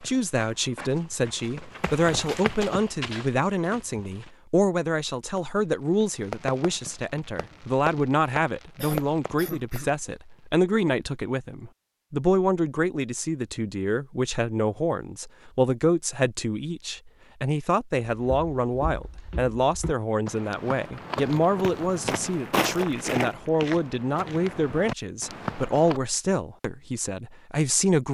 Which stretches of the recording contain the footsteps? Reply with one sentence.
You can hear the footsteps from 0.0 to 4.3 s and from 18.1 to 26.0 s.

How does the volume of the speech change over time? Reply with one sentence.
The volume of the speech stays about the same.